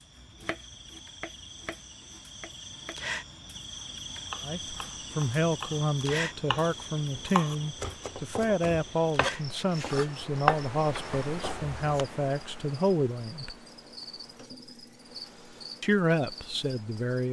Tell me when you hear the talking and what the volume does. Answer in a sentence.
You can hear the talking from 4.4 to 13.6 s, at a steady volume; and briefly from 15.8 to 17.2 s.